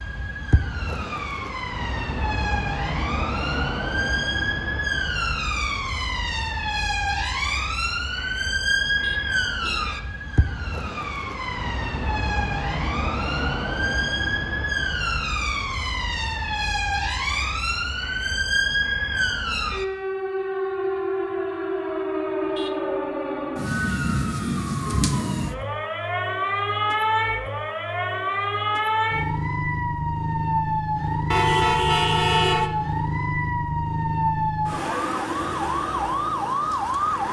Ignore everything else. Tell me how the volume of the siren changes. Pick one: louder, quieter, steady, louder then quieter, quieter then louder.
steady.